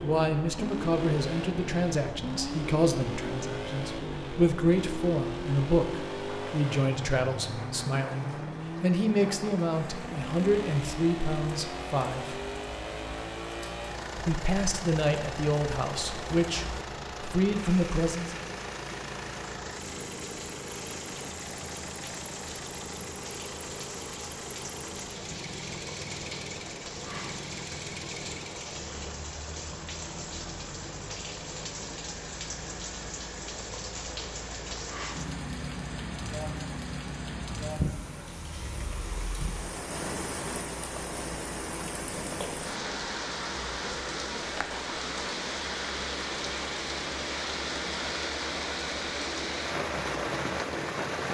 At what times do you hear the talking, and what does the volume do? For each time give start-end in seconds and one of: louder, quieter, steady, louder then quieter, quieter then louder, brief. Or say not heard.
0.0-12.4 steady
14.2-18.4 quieter then louder.